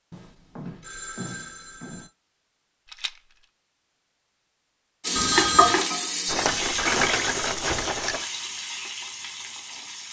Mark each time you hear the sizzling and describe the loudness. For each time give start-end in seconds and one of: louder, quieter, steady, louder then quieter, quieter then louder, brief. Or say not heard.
5.0-10.0 quieter.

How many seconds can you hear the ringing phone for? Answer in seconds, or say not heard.
3 s.